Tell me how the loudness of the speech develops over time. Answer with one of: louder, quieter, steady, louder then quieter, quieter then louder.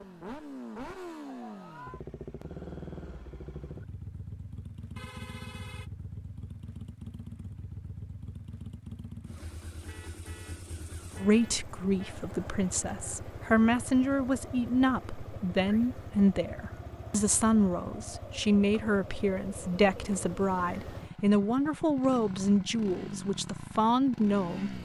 steady.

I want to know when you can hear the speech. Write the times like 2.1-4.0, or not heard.
11.2-24.7.